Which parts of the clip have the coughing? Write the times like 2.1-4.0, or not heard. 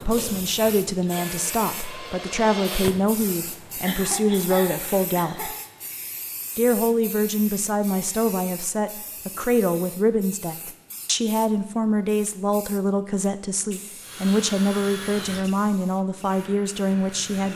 3.8-5.5.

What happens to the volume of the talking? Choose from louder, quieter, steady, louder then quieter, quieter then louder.
steady.